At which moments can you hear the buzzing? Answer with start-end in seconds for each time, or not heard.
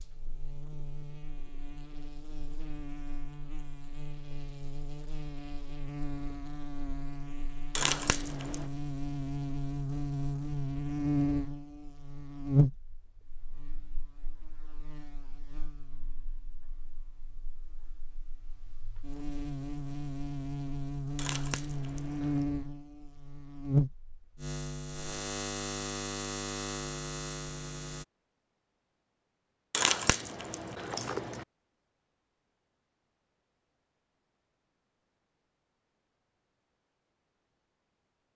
0.0-28.1.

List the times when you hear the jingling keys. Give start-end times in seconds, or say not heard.
7.8-8.7, 21.1-22.4, 29.7-31.4.